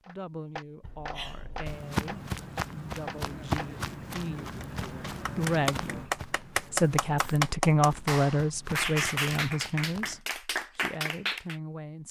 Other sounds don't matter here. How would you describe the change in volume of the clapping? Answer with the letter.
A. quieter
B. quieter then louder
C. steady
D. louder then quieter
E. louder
E.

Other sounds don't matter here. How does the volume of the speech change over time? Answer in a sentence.
The volume of the speech goes up, then down.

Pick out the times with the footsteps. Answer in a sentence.
The footsteps can be heard from 1.6 to 10.2 s.